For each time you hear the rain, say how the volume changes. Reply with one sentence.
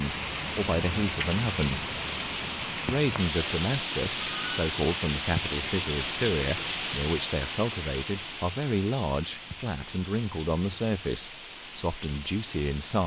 You can hear the rain from 0.0 to 13.0 s, getting quieter.